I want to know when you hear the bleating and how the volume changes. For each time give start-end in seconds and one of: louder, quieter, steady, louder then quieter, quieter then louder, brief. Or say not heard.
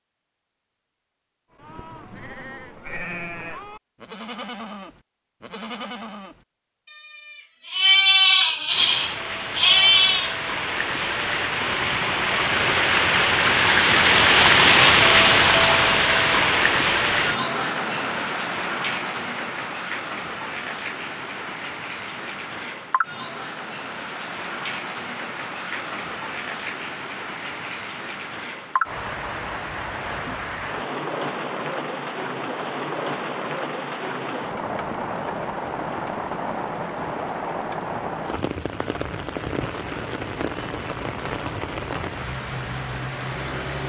1.6-10.3 louder.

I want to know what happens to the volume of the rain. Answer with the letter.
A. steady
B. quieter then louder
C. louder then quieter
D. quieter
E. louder
D.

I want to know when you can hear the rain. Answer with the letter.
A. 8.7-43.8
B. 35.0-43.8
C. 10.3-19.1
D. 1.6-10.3
A.